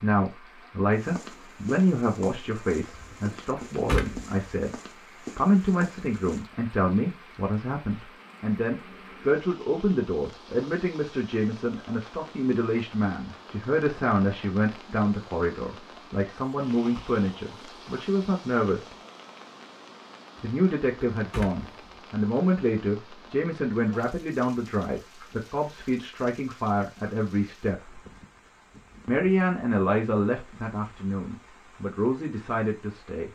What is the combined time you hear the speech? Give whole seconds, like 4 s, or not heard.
30 s.